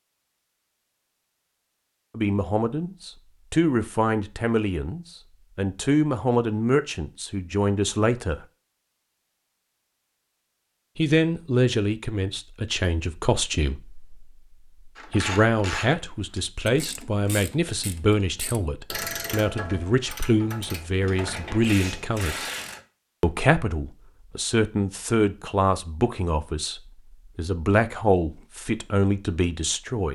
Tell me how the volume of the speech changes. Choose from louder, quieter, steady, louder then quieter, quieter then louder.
steady.